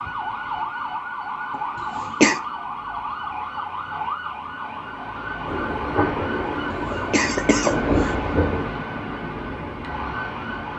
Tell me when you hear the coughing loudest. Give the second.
2 s.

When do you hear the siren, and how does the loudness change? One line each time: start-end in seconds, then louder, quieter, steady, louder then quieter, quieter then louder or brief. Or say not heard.
0.0-10.7 steady.